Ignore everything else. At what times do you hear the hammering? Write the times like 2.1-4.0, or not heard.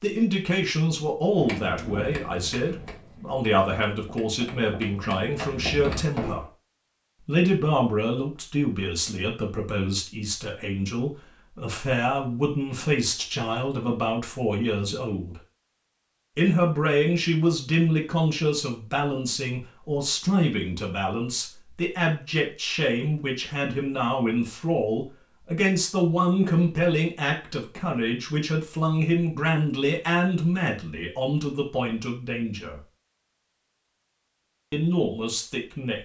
1.4-6.5.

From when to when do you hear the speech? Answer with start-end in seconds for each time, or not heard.
0.0-6.5, 7.2-15.3, 16.4-32.8, 34.7-36.0.